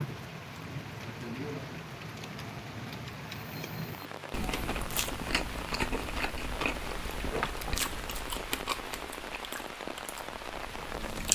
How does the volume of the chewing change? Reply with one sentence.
The loudness of the chewing goes down.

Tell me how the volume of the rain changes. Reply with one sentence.
The volume of the rain stays about the same.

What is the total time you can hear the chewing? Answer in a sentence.
The chewing can be heard for 8 seconds in total.